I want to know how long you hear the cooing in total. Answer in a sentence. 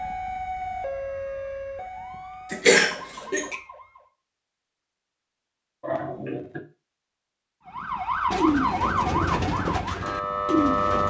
The cooing can be heard for 3 seconds in total.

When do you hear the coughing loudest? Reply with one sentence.
The volume of the coughing peaks at 3 seconds.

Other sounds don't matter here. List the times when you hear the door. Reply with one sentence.
You can't hear the door here.